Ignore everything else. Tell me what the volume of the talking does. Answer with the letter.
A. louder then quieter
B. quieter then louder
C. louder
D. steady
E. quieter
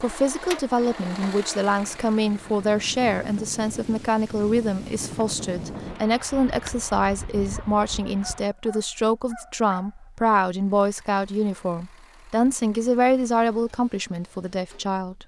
D.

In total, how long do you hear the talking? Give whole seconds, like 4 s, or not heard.
15 s.